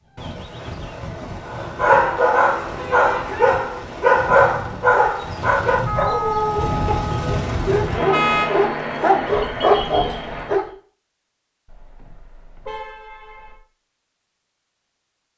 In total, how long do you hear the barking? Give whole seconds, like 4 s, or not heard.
9 s.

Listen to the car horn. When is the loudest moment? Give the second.
8 s.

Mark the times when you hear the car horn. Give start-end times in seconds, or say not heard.
2.8-3.3, 5.8-8.5, 11.7-13.6.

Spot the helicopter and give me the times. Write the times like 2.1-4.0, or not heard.
0.0-10.5.